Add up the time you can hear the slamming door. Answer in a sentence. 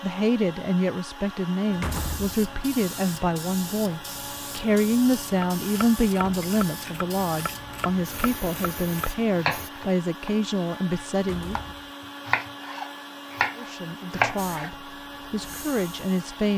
You can hear the slamming door for 2 seconds altogether.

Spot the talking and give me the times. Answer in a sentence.
You can hear the talking from 0.0 to 11.6 s and from 13.6 to 16.5 s.